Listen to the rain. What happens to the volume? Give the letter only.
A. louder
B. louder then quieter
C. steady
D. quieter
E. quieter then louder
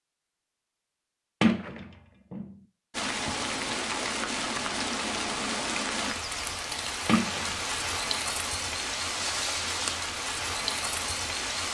C.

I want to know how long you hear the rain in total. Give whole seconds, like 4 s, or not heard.
9 s.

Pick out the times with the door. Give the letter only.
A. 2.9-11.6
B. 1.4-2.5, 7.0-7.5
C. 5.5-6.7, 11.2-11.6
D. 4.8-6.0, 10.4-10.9
B.